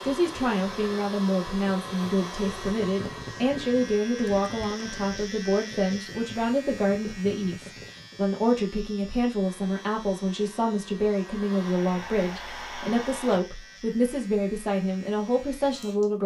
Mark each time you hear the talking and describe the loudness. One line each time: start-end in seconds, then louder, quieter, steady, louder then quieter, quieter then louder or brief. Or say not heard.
0.0-16.2 steady.